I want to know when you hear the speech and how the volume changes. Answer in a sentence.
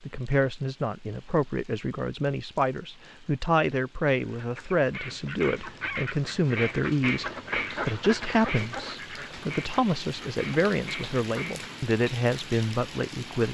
You can hear the speech from 0.0 to 13.5 s, at a steady volume.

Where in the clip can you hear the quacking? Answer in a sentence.
The quacking can be heard from 4.2 to 11.7 s.